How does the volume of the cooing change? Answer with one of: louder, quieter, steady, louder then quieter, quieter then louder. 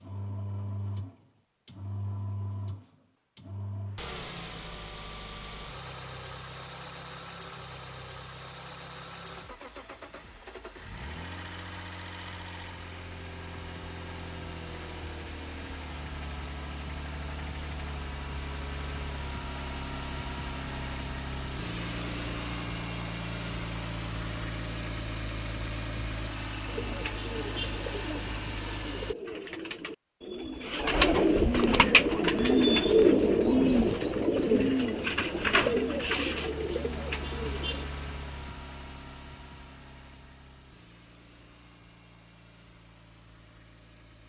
louder then quieter.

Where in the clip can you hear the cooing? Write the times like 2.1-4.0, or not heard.
26.6-37.9.